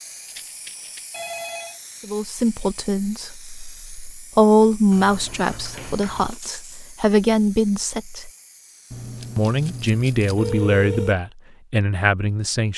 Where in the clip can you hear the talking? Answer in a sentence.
You can hear the talking from 2.0 to 8.3 s and from 9.3 to 12.7 s.